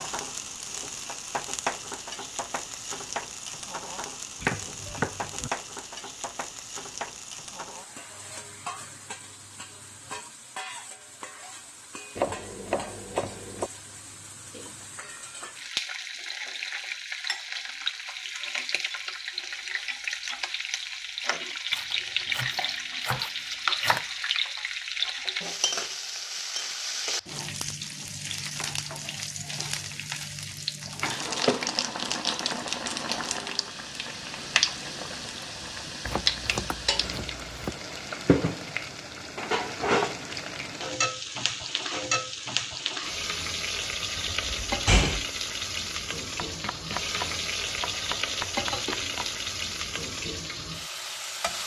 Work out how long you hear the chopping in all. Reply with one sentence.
The chopping can be heard for 11 seconds in total.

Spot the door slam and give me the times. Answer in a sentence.
The door slam can be heard from 44.1 to 45.2 s.